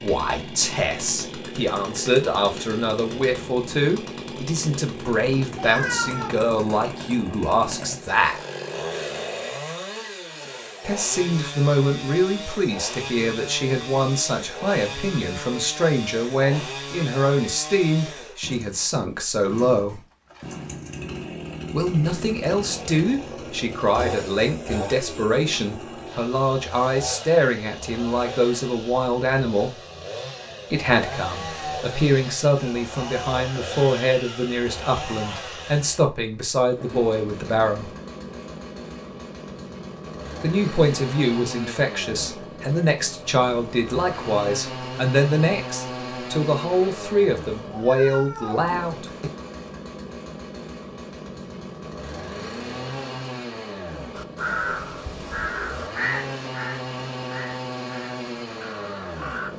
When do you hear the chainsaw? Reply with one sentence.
The chainsaw can be heard from 0.0 to 59.5 s.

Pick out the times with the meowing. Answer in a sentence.
You can hear the meowing from 5.5 to 6.3 s and from 47.7 to 48.8 s.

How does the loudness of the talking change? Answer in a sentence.
The loudness of the talking stays about the same.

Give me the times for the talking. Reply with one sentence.
You can hear the talking from 0.0 to 8.4 s, from 10.8 to 20.0 s, from 21.7 to 29.8 s, from 30.7 to 37.9 s and from 40.4 to 49.3 s.